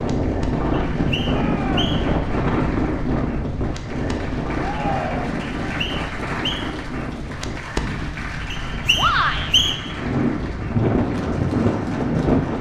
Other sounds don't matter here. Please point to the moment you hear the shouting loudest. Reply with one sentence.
The volume of the shouting peaks at 9 seconds.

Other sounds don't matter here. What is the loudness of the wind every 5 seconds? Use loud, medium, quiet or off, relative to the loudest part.
loud, medium, loud.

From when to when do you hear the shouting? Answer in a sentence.
You can hear the shouting from 1.2 to 1.9 s, from 4.6 to 5.5 s and from 8.9 to 9.6 s.